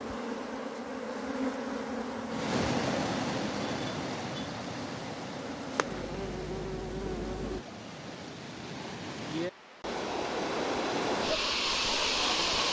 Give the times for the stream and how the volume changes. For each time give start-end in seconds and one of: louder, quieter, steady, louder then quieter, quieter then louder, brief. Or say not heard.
2.2-12.6 quieter then louder.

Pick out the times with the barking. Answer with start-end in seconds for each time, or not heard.
not heard.